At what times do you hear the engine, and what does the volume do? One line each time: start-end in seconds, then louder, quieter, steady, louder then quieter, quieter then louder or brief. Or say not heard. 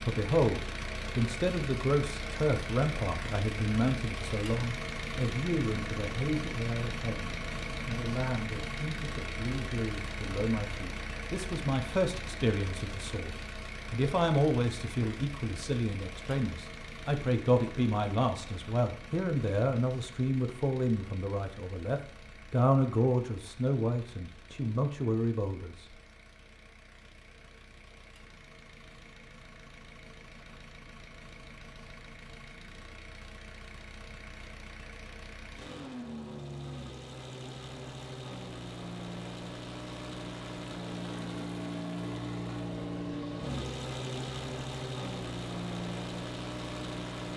0.0-47.3 quieter then louder.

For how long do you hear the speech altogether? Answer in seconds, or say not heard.
26 s.